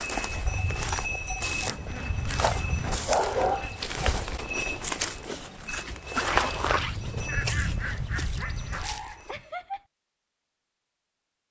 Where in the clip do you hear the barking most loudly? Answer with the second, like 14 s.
3 s.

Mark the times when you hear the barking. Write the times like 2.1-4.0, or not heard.
3.0-3.8, 8.2-9.8.